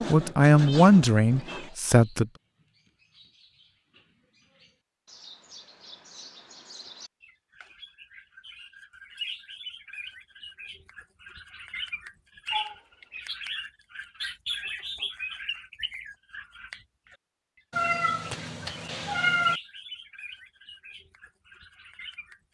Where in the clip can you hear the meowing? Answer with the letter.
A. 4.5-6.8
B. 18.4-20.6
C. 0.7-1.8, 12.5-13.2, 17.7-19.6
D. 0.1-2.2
C.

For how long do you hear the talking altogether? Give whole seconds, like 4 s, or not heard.
2 s.